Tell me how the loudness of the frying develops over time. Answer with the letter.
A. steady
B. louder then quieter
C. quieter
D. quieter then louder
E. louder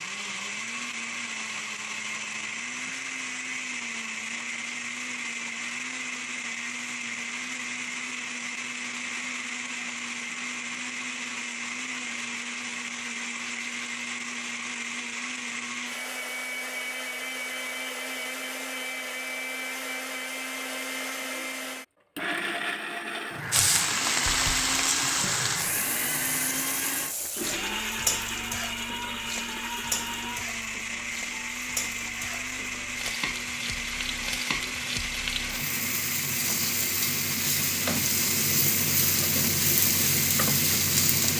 D.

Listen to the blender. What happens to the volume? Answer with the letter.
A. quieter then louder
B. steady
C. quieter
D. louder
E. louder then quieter
B.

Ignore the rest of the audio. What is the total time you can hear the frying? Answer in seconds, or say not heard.
18 s.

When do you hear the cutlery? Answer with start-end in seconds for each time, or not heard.
not heard.